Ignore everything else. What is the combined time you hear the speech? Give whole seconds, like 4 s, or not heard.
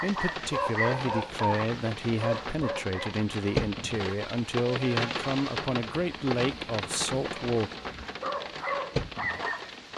8 s.